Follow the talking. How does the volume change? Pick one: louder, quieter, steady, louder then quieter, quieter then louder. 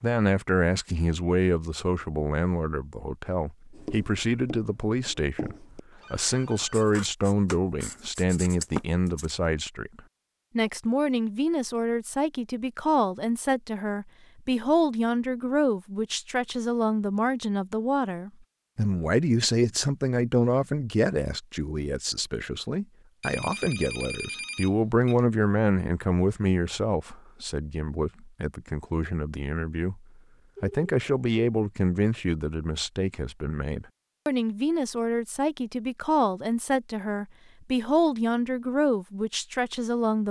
steady.